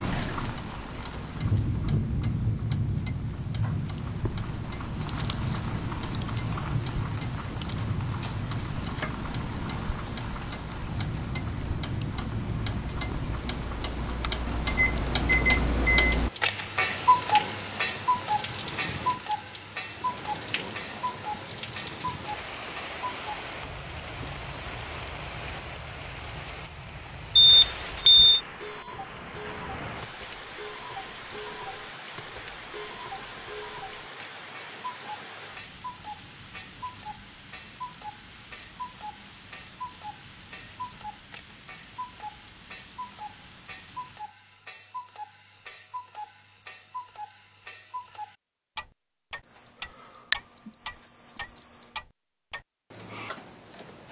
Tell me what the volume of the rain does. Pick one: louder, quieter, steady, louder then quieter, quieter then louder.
quieter.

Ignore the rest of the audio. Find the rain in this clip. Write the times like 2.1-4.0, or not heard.
0.0-44.4.